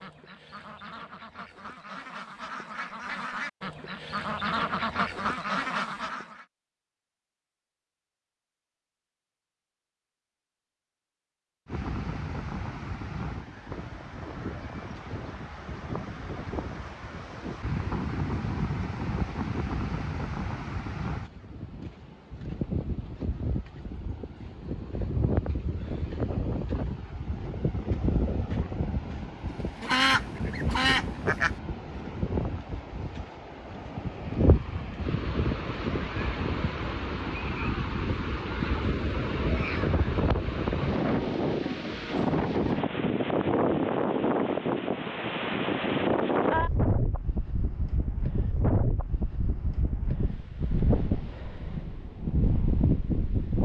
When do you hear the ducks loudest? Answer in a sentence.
The loudest moment of the ducks is at 30 seconds.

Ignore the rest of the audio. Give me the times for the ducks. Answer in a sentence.
You can hear the ducks from 0.0 to 6.5 s and from 29.6 to 31.6 s.